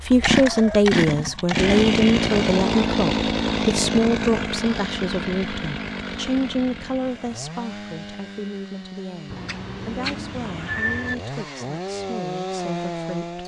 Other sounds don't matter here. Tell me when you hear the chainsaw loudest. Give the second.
2 s.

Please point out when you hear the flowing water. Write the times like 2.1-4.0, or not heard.
not heard.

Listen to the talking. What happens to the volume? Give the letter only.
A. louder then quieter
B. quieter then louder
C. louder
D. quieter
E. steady
D.